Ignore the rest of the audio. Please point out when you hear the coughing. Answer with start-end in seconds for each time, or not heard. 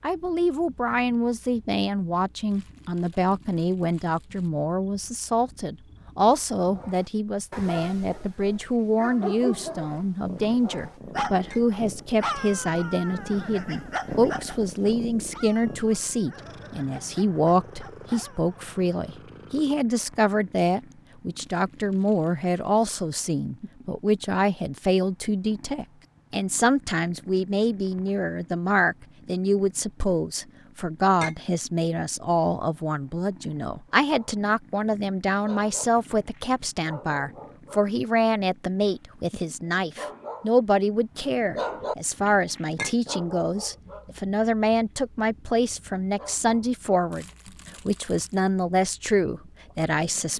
not heard.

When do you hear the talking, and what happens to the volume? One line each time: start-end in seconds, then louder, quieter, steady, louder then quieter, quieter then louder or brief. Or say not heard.
0.0-47.2 steady
47.9-50.3 brief.